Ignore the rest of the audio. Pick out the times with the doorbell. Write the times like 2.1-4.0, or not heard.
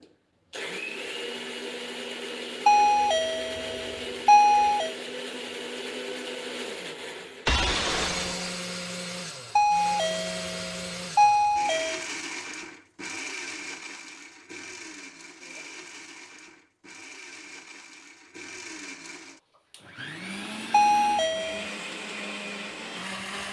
2.6-5.0, 9.6-12.1, 20.7-21.6.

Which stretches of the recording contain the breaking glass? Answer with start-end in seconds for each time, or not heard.
7.5-8.6.